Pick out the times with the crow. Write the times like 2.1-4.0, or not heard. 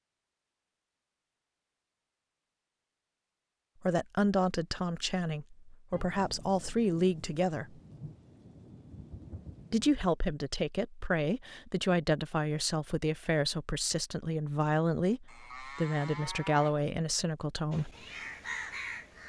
17.7-19.2.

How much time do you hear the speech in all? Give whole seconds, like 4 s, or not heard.
12 s.